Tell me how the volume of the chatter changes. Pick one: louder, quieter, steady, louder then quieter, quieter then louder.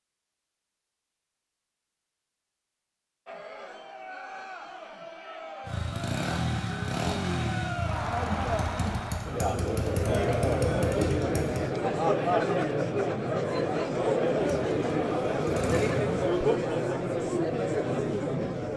louder.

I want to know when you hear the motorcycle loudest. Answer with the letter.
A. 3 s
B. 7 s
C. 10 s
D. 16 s
B.